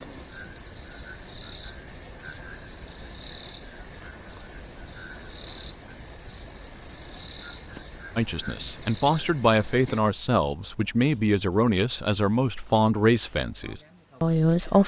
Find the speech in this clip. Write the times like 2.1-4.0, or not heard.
8.2-14.8.